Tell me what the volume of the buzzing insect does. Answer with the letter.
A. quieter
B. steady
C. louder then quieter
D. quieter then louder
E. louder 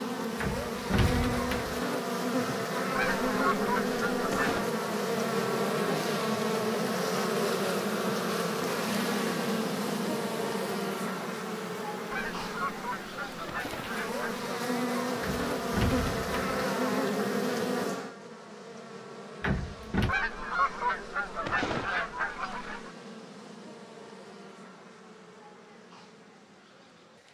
A.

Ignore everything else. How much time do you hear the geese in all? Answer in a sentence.
The geese can be heard for 7 seconds in total.